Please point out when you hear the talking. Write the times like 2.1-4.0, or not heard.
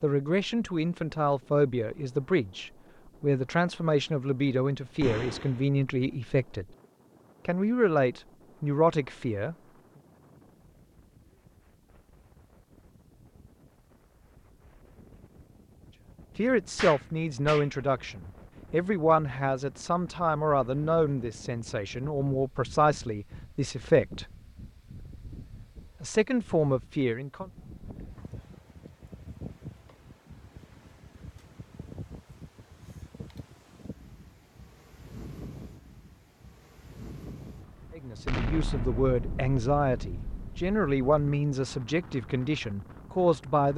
0.0-6.7, 7.5-9.6, 16.4-24.2, 26.0-27.5, 38.0-43.7.